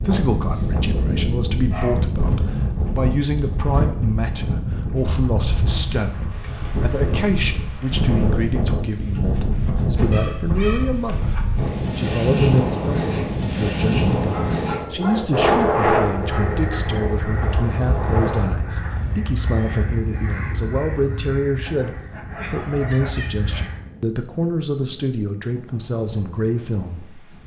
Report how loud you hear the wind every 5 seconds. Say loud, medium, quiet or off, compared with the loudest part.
loud, loud, loud, loud, quiet, quiet.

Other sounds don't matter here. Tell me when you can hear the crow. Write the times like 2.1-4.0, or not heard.
16.1-23.9.